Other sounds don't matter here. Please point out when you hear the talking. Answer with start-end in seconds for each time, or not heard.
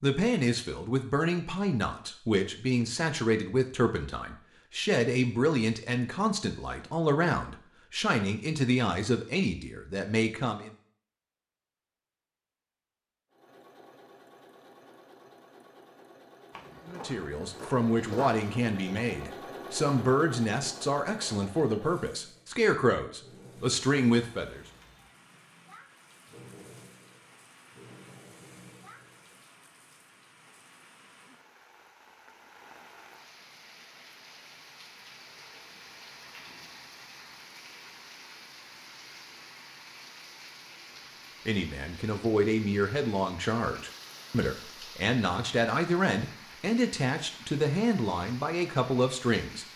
0.0-10.8, 16.9-24.6, 41.5-49.6.